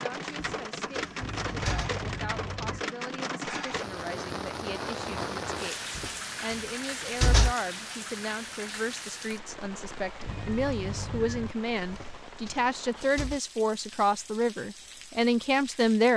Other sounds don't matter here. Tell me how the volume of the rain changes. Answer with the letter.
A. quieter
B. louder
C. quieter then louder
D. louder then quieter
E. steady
A.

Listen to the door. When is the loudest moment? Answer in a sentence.
The volume of the door peaks at 7 seconds.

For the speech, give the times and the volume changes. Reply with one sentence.
The speech can be heard from 0.0 to 16.1 s, getting louder.